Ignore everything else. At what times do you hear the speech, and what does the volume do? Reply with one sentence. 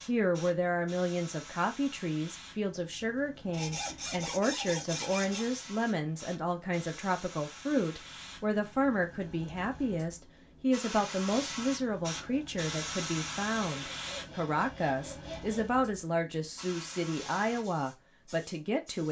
The speech can be heard from 0.1 to 19.0 s, at a steady volume.